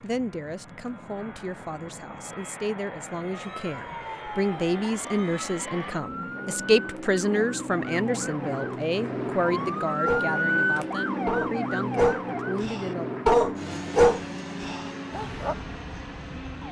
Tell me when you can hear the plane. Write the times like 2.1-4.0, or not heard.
0.0-16.6.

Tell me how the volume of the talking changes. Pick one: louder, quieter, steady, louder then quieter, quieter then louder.
louder then quieter.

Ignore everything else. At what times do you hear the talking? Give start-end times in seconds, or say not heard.
0.0-13.1.